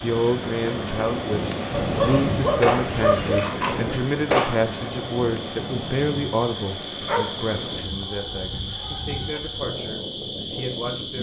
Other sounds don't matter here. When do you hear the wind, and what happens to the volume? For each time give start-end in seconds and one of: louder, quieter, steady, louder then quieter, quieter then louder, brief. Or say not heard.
0.0-11.1 quieter.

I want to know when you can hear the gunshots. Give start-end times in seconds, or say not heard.
2.6-4.5.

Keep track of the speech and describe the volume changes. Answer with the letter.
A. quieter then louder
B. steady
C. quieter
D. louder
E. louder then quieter
C.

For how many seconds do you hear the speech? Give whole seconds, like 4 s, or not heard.
11 s.